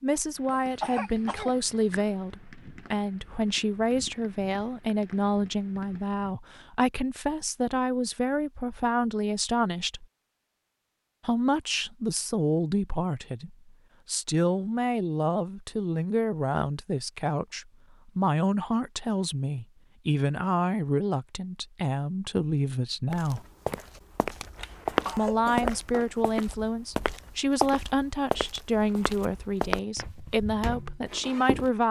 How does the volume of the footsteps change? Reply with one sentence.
The volume of the footsteps goes down.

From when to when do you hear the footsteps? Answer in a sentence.
The footsteps can be heard from 23.1 to 31.7 s.